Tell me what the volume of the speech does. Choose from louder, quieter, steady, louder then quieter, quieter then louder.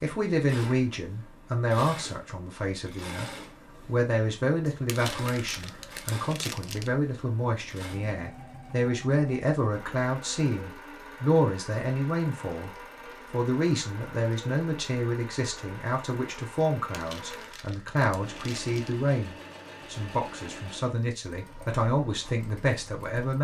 steady.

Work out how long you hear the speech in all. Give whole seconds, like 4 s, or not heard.
23 s.